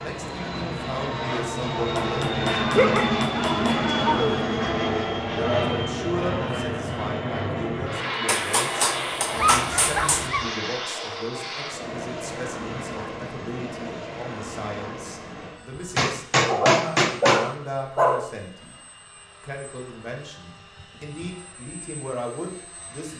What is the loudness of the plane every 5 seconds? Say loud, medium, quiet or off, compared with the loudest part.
loud, loud, medium, quiet, quiet.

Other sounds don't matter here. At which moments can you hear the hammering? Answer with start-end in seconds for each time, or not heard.
1.9-3.8, 8.2-10.3, 15.9-17.4.